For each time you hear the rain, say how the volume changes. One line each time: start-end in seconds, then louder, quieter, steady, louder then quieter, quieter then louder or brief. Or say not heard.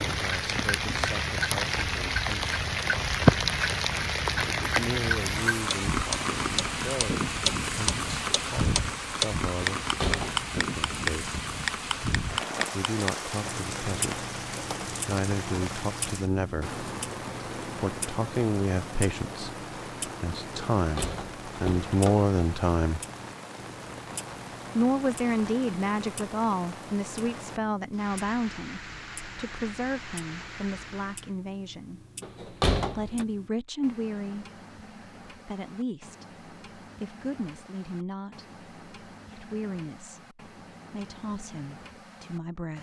0.0-31.4 quieter.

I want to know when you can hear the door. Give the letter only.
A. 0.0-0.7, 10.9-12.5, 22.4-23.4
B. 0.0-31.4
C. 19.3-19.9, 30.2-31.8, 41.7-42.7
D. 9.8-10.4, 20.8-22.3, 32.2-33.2
D.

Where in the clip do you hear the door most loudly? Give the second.
33 s.